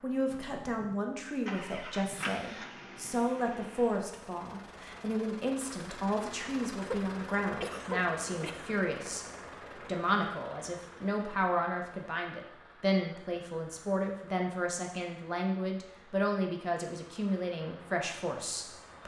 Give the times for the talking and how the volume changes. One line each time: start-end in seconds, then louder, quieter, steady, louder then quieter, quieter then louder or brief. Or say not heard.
0.0-19.0 steady.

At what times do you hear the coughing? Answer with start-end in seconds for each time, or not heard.
6.8-8.7.